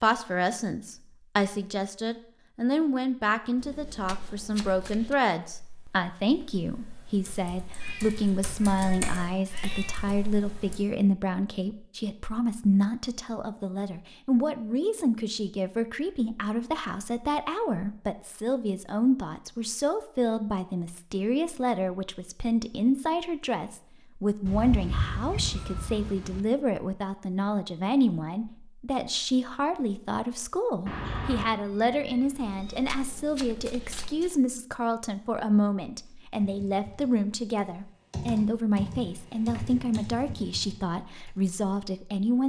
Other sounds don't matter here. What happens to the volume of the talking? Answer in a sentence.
The volume of the talking stays about the same.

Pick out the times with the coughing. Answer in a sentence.
You can't hear the coughing here.